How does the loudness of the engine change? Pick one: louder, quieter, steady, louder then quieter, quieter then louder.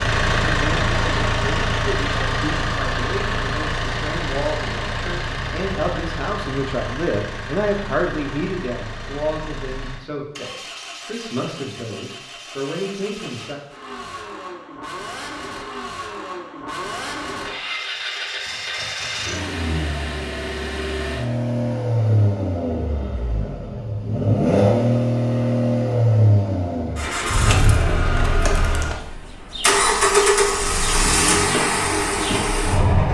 quieter then louder.